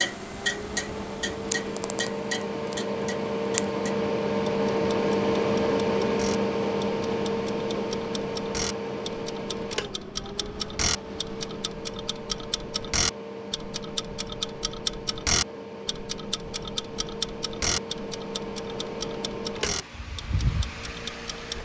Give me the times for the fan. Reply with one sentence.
The fan can be heard from 0.0 to 21.6 s.